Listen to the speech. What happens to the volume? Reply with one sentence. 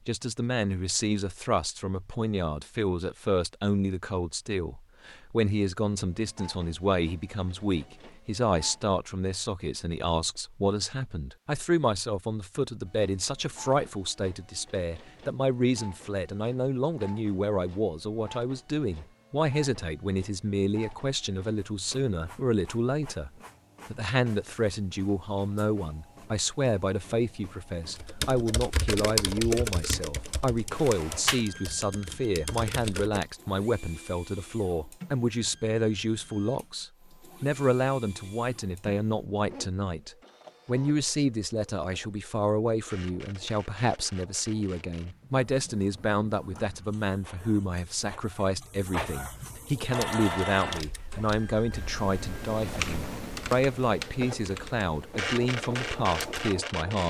The volume of the speech stays about the same.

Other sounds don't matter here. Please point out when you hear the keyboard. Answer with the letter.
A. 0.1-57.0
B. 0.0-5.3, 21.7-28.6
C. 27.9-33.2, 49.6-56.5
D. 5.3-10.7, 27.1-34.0
C.